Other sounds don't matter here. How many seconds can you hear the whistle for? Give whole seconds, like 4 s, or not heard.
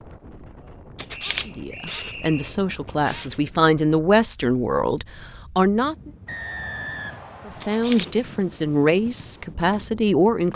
3 s.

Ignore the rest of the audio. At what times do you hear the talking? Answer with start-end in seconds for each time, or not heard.
1.4-6.1, 7.5-10.5.